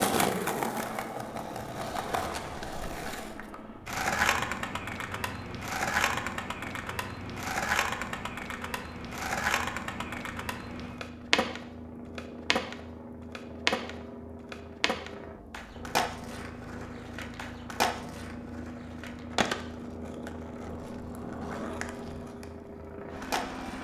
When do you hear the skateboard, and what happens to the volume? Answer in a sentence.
You can hear the skateboard from 0.0 to 23.7 s, getting quieter.